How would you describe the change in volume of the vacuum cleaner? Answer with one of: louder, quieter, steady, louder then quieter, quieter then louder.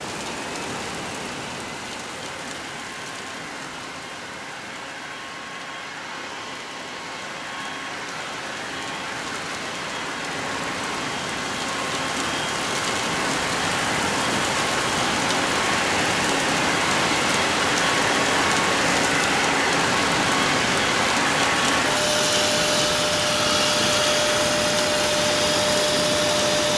louder.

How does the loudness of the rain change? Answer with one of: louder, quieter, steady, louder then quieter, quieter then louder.
louder.